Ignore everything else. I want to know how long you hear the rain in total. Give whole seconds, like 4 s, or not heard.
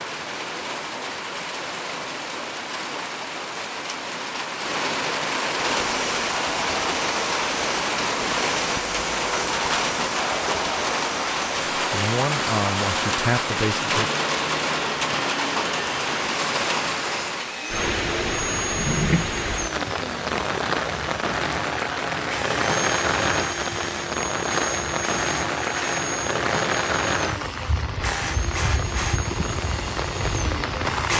31 s.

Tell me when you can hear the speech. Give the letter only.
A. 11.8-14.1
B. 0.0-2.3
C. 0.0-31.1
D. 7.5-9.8
A.